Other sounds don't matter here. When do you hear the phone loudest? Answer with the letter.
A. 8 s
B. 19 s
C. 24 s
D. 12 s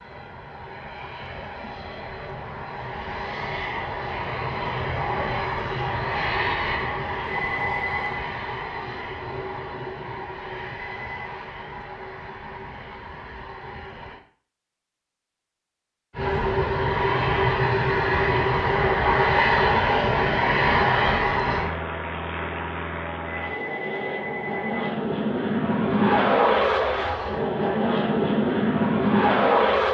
A.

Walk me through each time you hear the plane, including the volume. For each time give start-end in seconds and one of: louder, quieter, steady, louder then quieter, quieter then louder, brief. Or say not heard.
0.0-14.2 louder then quieter
16.1-29.8 quieter then louder.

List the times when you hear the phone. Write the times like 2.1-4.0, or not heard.
7.2-8.2, 10.8-11.3, 23.2-24.9.